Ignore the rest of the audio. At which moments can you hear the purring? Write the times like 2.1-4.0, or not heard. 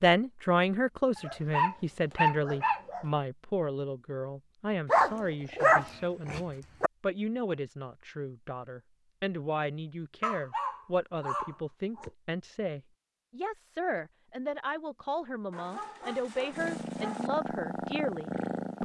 16.5-18.8.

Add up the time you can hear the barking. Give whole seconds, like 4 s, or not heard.
8 s.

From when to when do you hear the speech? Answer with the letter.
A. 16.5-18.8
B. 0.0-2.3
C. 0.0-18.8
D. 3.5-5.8
C.